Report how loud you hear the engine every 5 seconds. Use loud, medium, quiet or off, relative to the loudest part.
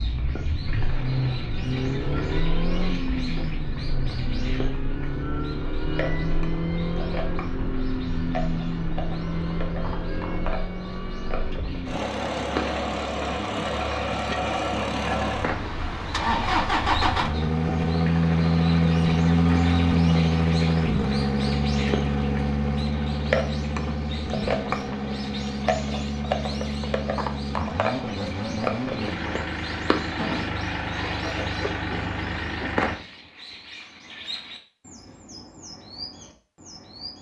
medium, medium, medium, loud, loud, medium, medium, off.